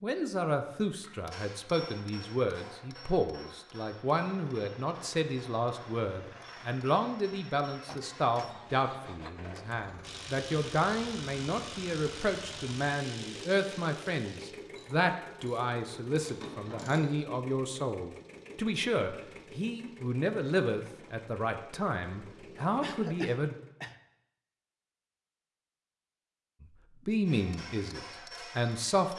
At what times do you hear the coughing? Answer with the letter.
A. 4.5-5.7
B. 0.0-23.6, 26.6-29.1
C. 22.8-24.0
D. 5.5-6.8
C.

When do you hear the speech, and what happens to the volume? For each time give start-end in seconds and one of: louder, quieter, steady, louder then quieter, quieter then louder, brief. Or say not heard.
0.0-23.6 steady
26.6-29.1 brief.